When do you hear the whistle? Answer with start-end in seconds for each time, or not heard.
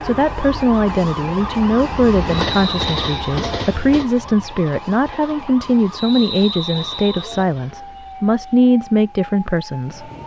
2.4-3.4, 6.0-7.5.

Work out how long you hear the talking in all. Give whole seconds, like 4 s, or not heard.
10 s.